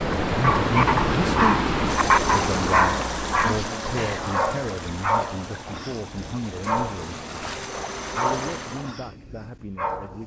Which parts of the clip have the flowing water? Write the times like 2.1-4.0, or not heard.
0.0-9.0.